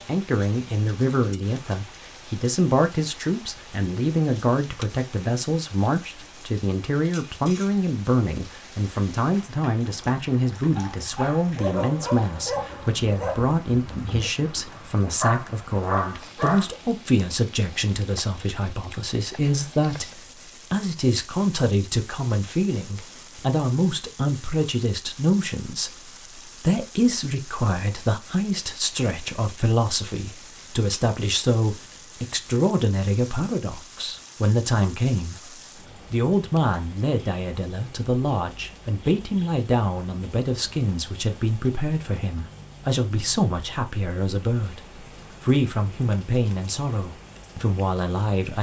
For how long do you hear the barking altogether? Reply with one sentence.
The barking can be heard for 6 seconds in total.